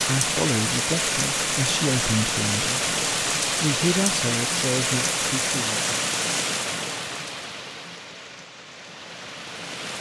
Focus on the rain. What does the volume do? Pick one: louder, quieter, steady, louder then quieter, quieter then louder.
quieter.